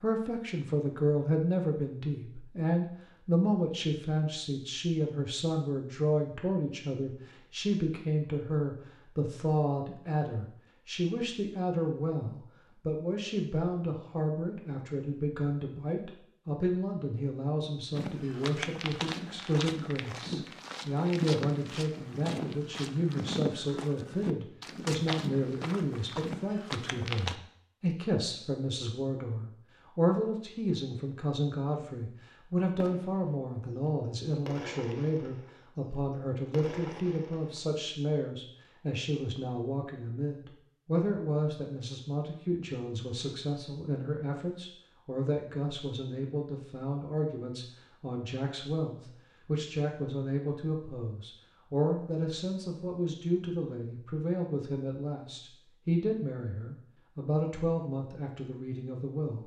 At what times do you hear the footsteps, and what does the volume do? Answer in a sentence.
The footsteps can be heard from 17.9 to 27.4 s, at a steady volume.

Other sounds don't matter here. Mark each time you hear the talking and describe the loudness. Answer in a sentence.
The talking can be heard from 0.0 to 59.4 s, at a steady volume.